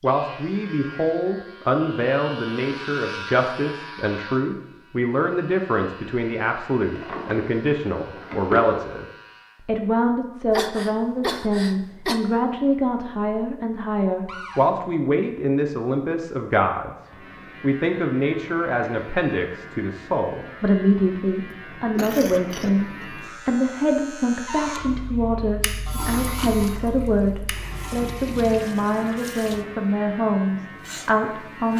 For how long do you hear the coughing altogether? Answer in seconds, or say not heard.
3 s.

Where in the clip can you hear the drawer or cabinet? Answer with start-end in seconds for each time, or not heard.
7.0-8.7, 14.2-14.7, 24.4-24.9.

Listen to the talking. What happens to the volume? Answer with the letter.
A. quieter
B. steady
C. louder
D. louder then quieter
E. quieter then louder
B.